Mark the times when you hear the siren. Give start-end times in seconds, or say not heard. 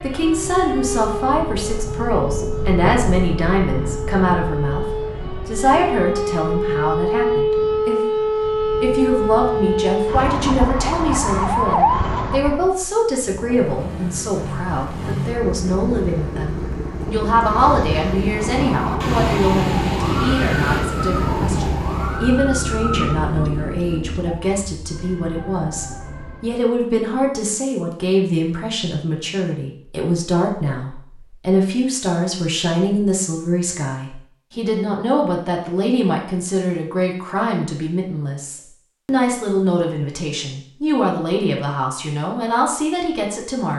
0.0-12.8, 18.4-26.7.